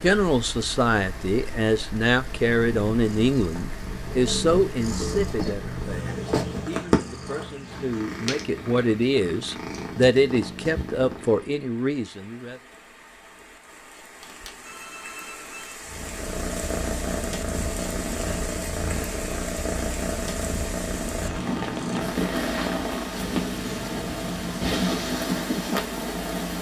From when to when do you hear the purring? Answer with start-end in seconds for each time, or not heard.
2.1-11.4, 15.8-26.5.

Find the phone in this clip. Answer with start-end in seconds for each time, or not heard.
14.2-15.8.